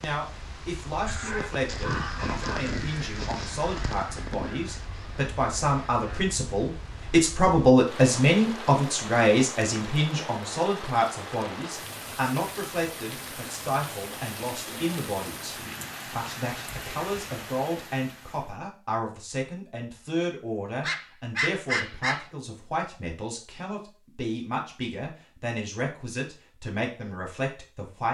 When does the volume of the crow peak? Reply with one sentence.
The loudest moment of the crow is at 2 seconds.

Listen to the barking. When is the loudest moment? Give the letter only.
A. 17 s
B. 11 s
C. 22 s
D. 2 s
C.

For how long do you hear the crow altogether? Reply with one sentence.
You can hear the crow for 5 seconds altogether.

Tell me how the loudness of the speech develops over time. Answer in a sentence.
The volume of the speech goes up, then down.